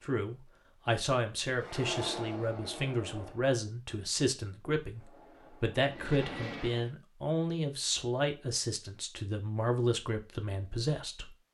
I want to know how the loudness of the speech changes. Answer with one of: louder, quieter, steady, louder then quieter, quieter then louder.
steady.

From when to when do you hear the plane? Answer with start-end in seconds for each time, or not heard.
1.6-3.5, 5.0-7.0.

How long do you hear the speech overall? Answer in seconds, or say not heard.
11 s.